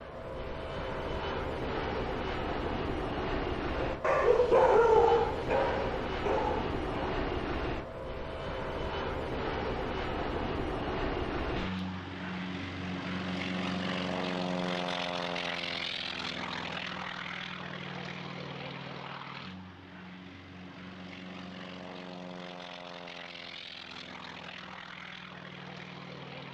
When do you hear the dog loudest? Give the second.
5 s.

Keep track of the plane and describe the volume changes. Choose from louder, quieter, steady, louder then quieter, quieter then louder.
quieter.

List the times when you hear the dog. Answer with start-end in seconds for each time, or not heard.
3.7-7.2.